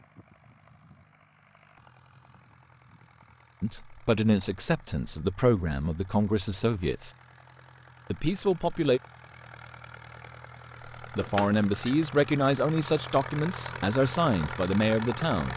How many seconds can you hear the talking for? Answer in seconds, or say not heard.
9 s.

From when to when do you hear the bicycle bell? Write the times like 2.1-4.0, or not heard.
11.2-11.9.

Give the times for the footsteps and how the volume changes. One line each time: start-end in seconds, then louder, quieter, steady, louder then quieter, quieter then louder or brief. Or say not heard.
not heard.